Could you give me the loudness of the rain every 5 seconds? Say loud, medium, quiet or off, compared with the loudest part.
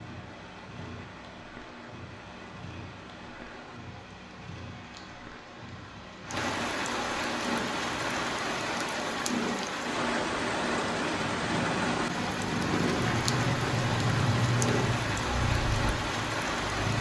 quiet, loud, loud, loud.